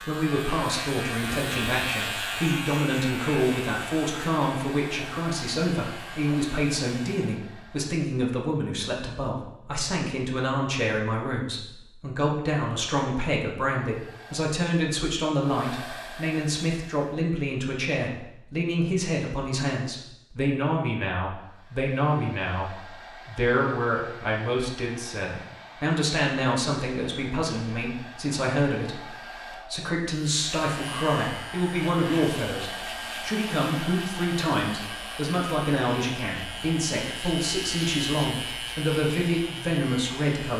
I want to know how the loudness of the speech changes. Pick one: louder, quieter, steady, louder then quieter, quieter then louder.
steady.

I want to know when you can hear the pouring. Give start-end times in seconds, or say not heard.
not heard.